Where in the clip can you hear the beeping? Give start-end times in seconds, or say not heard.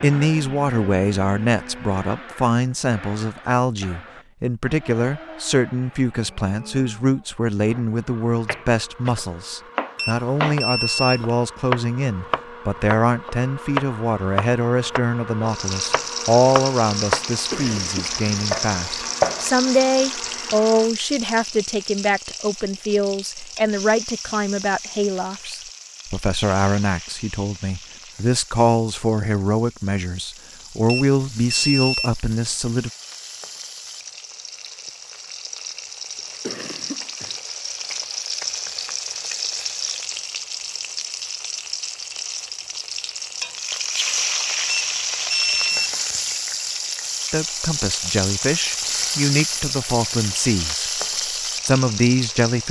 9.9-11.3, 30.9-32.2, 44.6-46.0.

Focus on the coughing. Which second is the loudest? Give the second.
18 s.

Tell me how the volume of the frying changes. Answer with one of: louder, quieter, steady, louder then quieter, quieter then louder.
quieter then louder.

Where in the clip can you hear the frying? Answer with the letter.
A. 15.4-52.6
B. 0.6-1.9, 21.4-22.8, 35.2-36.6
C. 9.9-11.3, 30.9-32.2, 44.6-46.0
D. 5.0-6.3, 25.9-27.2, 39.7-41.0
A.